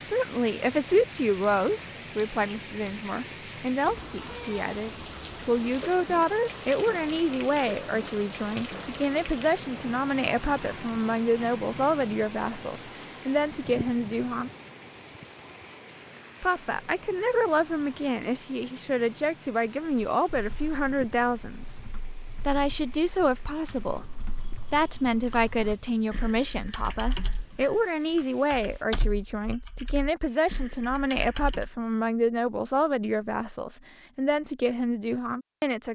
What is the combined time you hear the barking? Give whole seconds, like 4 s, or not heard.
not heard.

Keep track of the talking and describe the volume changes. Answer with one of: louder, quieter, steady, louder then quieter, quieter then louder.
steady.